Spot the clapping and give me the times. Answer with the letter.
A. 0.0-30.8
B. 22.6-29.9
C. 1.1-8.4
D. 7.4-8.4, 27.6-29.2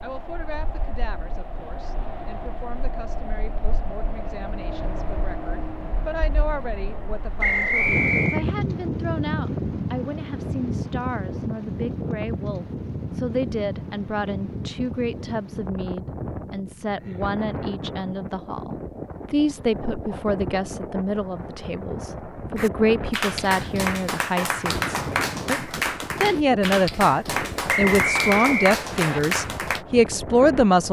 B.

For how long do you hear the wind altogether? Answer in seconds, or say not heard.
31 s.